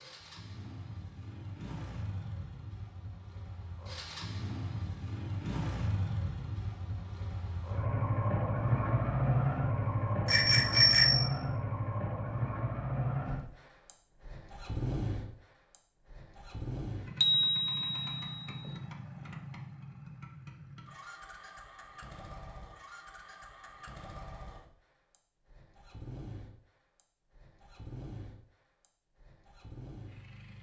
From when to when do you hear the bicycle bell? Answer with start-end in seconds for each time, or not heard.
10.2-11.3, 17.2-18.7.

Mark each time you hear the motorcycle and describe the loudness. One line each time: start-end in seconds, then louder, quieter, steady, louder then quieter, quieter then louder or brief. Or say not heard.
0.0-30.5 louder then quieter.